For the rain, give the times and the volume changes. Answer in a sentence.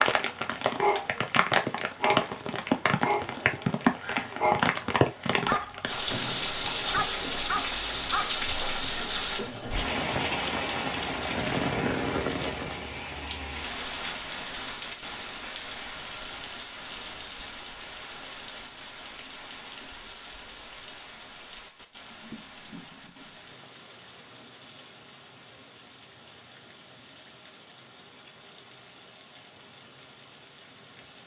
The rain can be heard from 0.0 to 31.2 s, getting quieter.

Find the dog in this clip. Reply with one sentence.
You can hear the dog from 0.1 to 8.4 s.